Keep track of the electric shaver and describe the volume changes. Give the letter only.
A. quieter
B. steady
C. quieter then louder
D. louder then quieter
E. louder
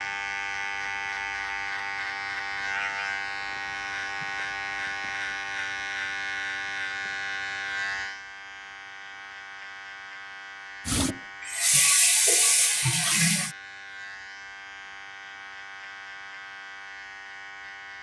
A.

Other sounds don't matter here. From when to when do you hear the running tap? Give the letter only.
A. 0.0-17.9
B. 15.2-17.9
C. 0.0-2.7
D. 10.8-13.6
D.